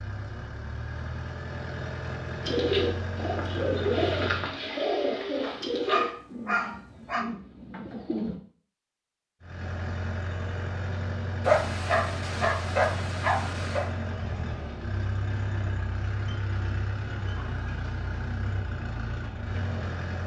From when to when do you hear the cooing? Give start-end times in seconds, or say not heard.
2.4-8.4.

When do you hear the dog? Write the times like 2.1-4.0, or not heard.
5.4-7.2, 11.4-13.8.